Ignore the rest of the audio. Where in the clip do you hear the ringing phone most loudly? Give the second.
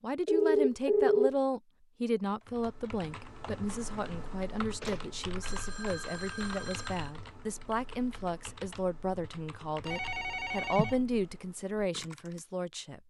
1 s.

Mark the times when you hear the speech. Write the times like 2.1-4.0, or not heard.
0.0-13.0.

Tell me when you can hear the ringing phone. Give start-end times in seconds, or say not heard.
0.2-1.4, 4.8-7.1, 9.8-11.0.